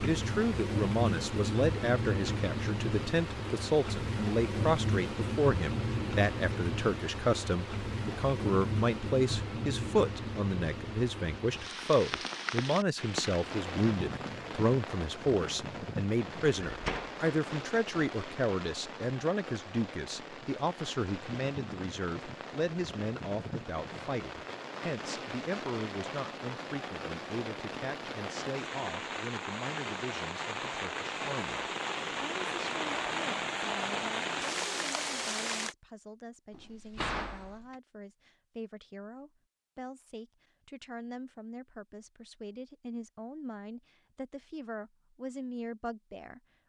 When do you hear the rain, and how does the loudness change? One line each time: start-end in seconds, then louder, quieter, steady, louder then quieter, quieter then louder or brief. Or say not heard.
0.0-35.8 quieter then louder.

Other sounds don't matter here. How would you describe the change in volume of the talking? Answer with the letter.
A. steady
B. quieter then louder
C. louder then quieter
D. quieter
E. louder
D.